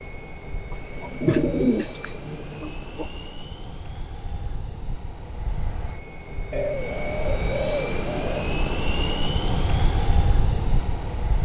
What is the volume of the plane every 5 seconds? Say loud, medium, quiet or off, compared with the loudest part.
medium, loud, loud.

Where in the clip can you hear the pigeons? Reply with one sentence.
You can hear the pigeons from 0.7 to 3.0 s and from 6.5 to 8.4 s.